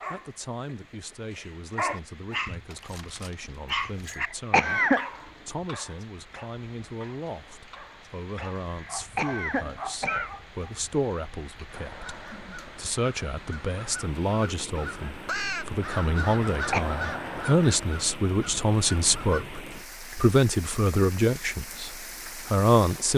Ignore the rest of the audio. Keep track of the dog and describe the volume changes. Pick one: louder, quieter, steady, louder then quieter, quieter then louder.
quieter then louder.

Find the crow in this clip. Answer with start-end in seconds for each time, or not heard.
11.7-19.4.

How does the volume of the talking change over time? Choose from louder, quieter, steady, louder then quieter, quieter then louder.
louder.